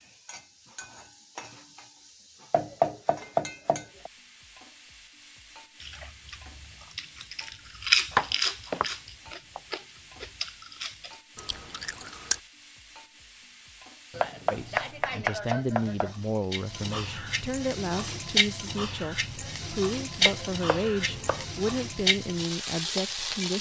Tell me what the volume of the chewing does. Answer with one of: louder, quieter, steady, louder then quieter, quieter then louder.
louder then quieter.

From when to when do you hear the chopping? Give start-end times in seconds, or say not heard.
2.5-4.1, 8.1-9.6, 14.1-16.1, 20.2-21.4.